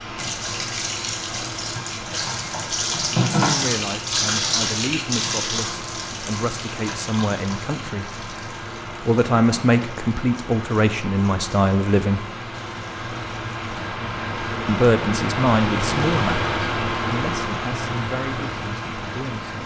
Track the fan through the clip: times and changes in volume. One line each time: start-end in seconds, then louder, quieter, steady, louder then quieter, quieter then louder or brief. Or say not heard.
0.0-19.6 louder.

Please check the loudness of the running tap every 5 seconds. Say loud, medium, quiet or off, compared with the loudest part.
loud, medium, quiet, quiet.